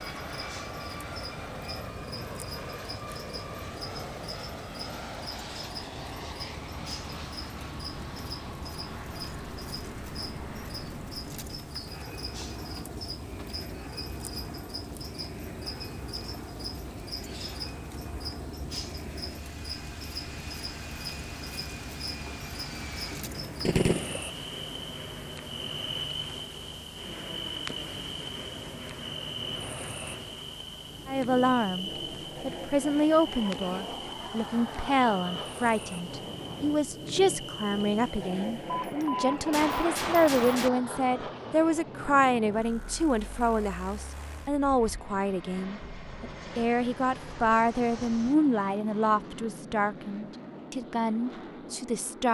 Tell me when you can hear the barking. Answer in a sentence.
The barking can't be heard in this clip.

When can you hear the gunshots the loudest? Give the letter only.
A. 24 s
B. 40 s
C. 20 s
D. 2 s
A.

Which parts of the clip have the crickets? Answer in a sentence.
You can hear the crickets from 0.0 to 39.1 s.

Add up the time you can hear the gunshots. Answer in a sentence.
You can hear the gunshots for 3 seconds altogether.